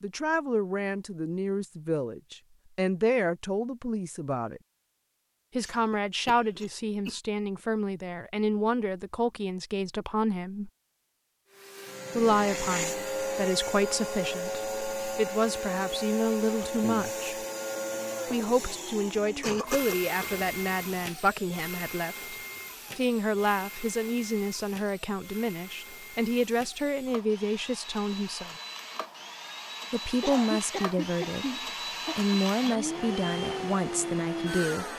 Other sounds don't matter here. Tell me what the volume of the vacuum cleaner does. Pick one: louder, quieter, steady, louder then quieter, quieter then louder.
quieter then louder.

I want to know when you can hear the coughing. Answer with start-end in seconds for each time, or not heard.
5.6-7.2, 19.1-21.1, 30.2-32.2.